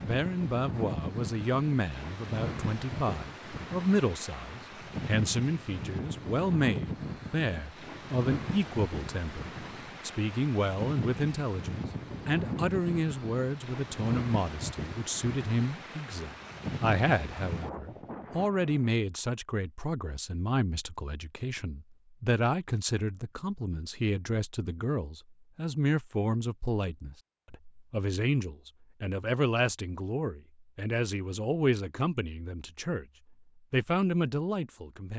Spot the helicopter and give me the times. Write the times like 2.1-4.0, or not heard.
not heard.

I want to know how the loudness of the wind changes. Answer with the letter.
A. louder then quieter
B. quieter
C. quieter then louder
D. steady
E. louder
D.